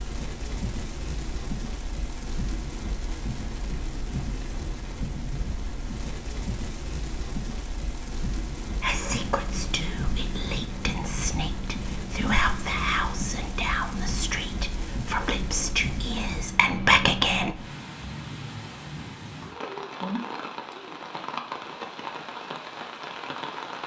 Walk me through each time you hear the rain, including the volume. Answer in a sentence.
The rain can be heard from 0.0 to 23.8 s, at a steady volume.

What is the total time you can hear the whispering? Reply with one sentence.
The whispering can be heard for 9 seconds in total.